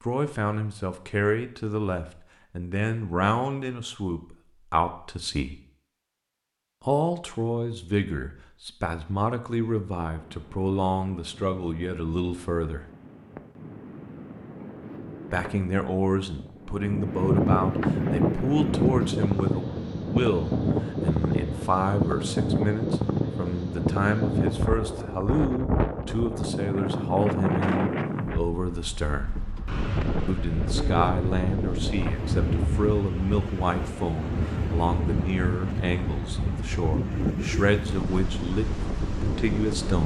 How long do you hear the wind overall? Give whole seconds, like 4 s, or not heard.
30 s.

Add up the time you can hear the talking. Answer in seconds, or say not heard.
35 s.